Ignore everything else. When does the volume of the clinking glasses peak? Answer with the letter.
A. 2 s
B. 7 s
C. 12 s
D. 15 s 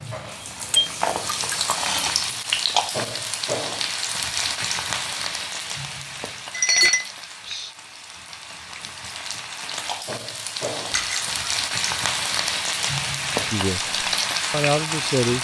B.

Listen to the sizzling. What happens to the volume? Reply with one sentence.
The loudness of the sizzling goes down, then up.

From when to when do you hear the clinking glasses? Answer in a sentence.
You can hear the clinking glasses from 0.7 to 1.8 s, from 6.5 to 7.7 s and from 10.9 to 11.5 s.